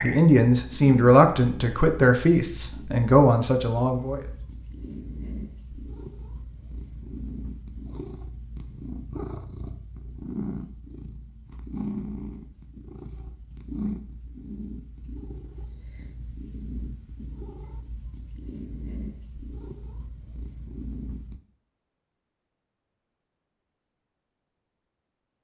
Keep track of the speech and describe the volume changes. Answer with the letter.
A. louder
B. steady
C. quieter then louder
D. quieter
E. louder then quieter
C.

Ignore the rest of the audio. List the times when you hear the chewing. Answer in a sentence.
You can't hear the chewing here.